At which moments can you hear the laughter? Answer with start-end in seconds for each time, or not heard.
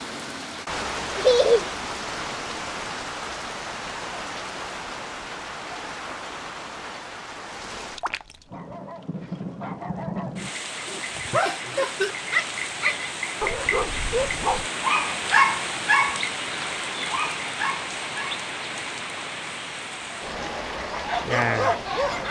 1.1-1.7, 11.3-12.2.